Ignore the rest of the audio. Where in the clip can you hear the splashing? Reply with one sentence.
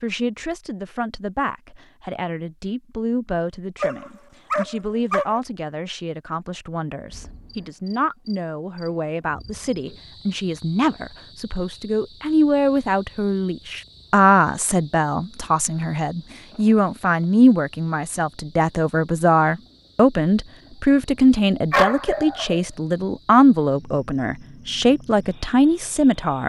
The splashing can't be heard in this clip.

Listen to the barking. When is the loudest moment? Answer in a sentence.
The volume of the barking peaks at 22 seconds.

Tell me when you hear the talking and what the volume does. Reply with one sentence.
You can hear the talking from 0.0 to 26.4 s, getting louder.